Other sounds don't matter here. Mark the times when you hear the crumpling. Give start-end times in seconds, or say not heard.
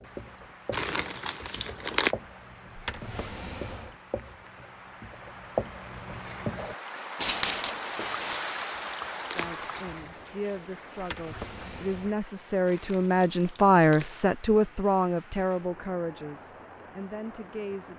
0.7-2.1, 8.1-9.9, 12.7-14.2.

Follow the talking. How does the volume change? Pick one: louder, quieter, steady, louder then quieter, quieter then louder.
louder then quieter.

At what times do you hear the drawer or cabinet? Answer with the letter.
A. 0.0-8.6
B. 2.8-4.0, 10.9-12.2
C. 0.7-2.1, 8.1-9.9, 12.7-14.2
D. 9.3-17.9
B.